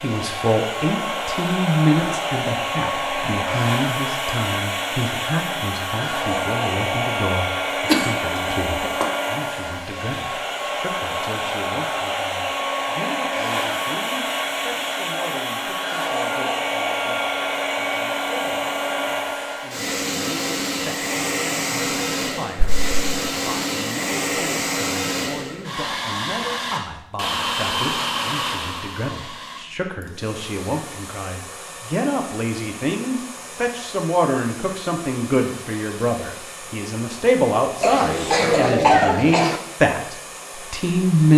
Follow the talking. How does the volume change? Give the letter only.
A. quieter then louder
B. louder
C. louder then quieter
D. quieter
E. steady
A.